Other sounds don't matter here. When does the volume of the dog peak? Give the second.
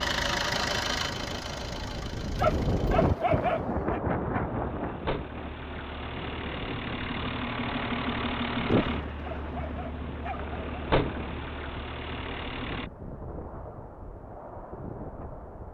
3 s.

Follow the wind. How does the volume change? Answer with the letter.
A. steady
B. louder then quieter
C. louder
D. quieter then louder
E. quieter
E.